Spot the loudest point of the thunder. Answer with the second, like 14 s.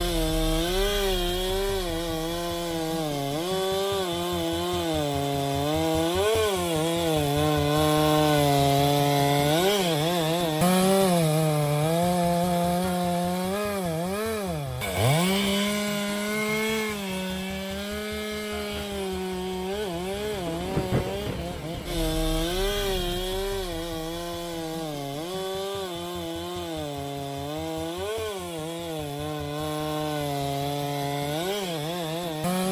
21 s.